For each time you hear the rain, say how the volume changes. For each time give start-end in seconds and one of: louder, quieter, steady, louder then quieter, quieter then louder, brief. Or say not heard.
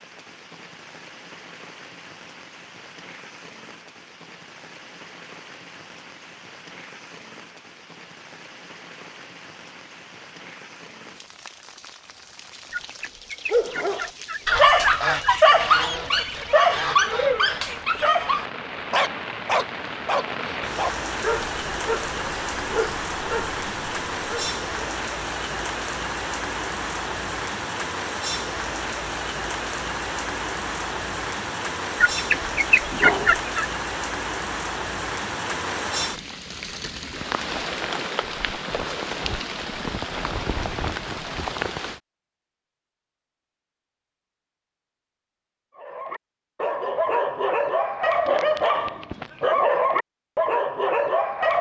0.0-42.0 louder.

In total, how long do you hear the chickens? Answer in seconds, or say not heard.
4 s.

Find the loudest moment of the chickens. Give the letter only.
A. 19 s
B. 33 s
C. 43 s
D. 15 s
B.